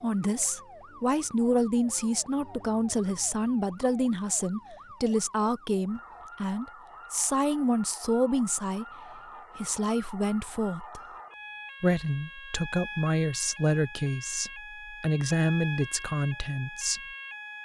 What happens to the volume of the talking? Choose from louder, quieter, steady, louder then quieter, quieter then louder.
steady.